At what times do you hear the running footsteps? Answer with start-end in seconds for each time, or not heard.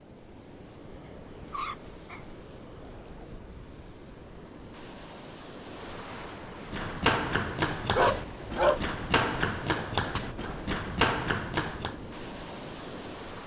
6.7-11.9.